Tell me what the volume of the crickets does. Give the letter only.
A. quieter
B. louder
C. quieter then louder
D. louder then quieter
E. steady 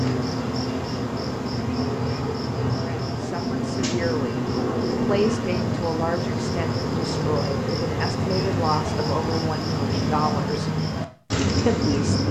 E.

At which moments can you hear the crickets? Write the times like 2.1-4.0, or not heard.
0.0-12.2.